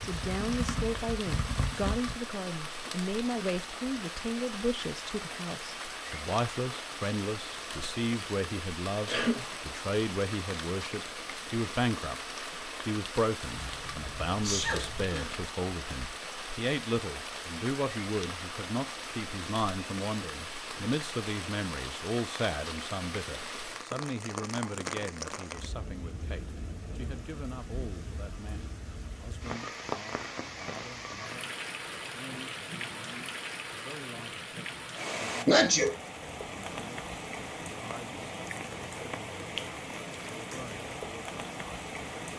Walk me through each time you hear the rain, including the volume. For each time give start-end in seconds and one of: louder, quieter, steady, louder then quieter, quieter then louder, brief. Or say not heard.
0.0-42.3 steady.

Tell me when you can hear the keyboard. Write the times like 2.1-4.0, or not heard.
0.0-2.1.